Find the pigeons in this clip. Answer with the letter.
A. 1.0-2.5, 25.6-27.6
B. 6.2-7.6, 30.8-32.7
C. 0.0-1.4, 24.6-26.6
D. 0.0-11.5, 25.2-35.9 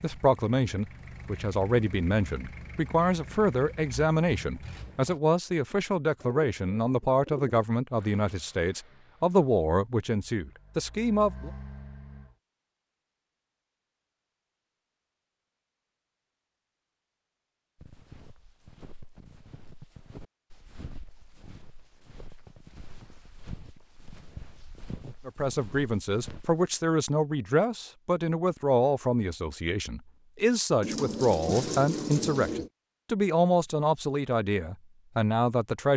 B.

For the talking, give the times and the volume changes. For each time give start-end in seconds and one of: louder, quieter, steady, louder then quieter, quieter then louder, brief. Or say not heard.
0.0-11.5 steady
25.2-35.9 steady.